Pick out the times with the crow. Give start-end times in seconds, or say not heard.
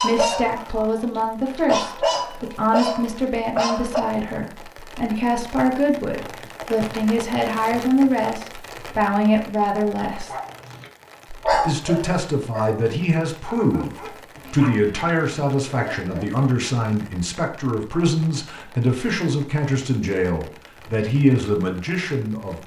not heard.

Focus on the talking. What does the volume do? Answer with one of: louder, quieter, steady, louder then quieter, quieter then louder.
steady.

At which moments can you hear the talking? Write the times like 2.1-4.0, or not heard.
0.0-10.3, 11.5-22.6.